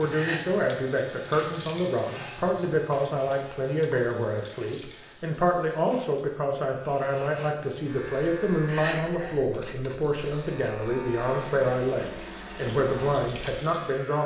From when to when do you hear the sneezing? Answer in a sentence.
The sneezing can be heard from 0.1 to 0.8 s and from 8.7 to 9.8 s.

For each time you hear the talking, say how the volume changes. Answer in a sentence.
The talking can be heard from 0.0 to 14.2 s, at a steady volume.